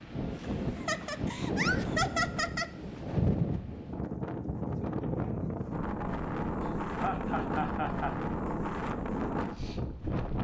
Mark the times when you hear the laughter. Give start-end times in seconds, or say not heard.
0.8-2.7, 6.6-8.2.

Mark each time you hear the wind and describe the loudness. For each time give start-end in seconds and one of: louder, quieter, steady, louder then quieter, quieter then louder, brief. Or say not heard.
0.0-10.3 steady.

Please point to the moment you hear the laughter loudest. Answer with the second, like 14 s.
2 s.